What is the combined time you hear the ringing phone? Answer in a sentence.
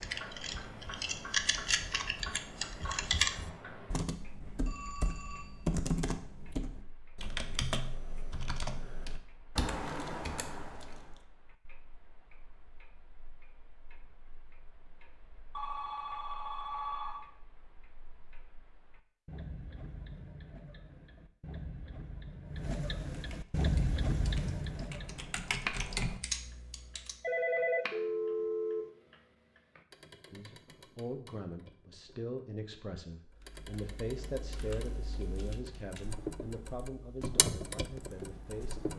The ringing phone can be heard for 5 seconds in total.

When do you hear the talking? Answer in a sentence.
The talking can be heard from 30.3 to 38.9 s.